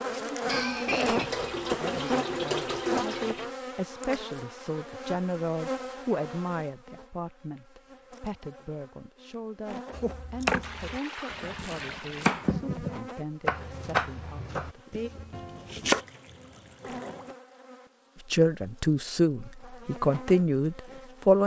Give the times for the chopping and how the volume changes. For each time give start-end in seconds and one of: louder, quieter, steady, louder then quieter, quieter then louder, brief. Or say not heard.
9.9-16.0 quieter.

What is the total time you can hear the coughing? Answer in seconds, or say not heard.
2 s.